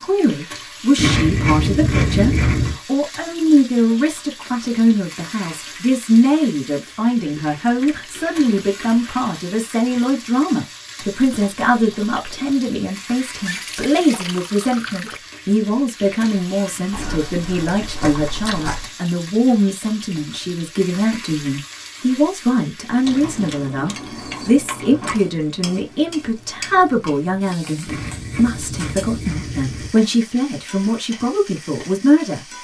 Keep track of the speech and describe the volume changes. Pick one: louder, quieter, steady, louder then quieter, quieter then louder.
steady.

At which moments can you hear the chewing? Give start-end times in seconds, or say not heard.
0.9-2.8, 7.2-9.2, 11.1-12.6, 16.9-18.9, 23.1-25.2, 27.9-29.9.